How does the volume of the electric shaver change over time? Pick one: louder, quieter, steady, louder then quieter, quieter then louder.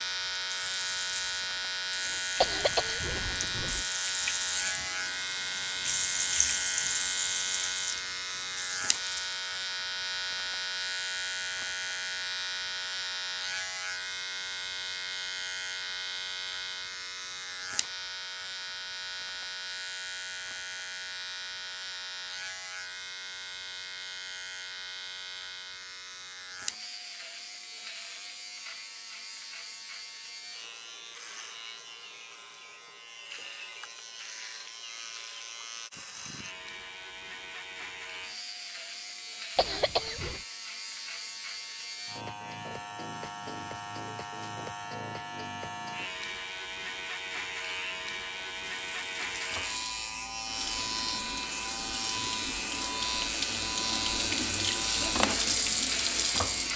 quieter then louder.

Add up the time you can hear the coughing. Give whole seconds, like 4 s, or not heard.
2 s.